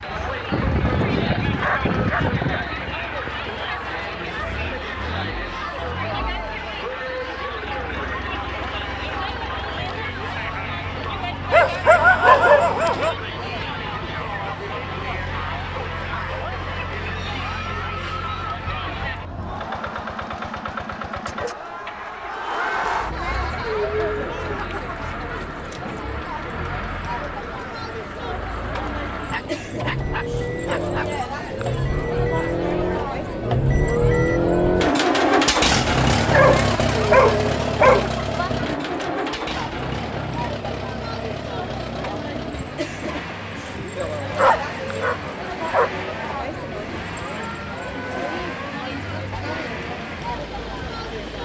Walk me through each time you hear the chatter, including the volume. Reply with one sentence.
The chatter can be heard from 0.0 to 51.3 s, at a steady volume.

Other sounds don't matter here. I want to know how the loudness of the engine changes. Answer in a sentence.
The loudness of the engine goes up, then down.